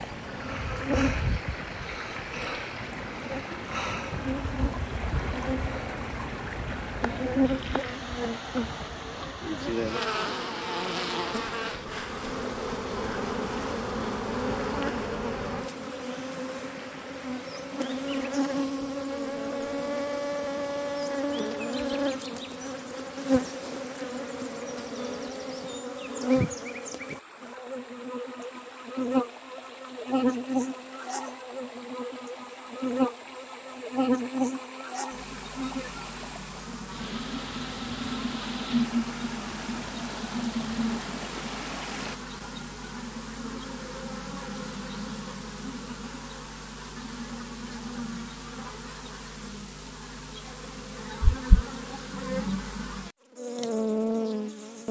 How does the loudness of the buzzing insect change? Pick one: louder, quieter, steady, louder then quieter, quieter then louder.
steady.